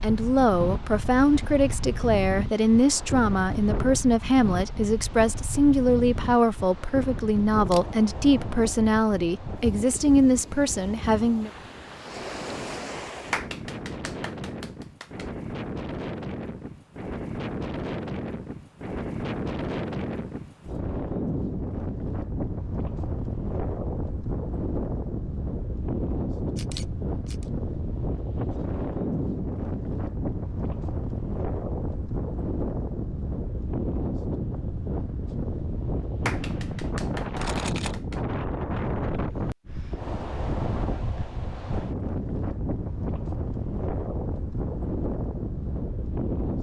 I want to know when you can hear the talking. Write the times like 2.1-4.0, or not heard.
0.0-11.5.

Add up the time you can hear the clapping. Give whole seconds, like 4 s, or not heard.
4 s.